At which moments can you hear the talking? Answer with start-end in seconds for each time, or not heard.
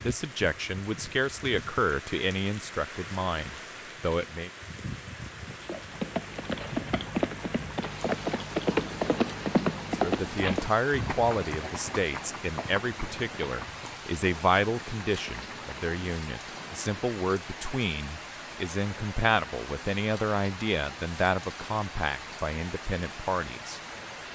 0.0-4.5, 9.9-23.8.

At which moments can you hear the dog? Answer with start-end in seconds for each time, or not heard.
not heard.